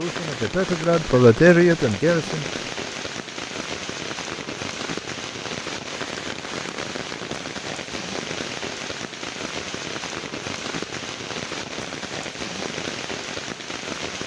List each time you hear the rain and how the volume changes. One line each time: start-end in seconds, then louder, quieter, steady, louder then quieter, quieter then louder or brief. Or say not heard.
0.0-14.2 steady.